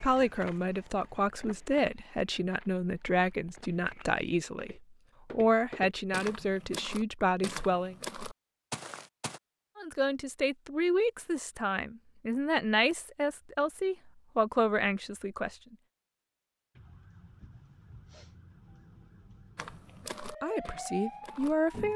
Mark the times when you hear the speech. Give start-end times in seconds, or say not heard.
0.0-8.0, 9.8-15.8, 20.4-21.9.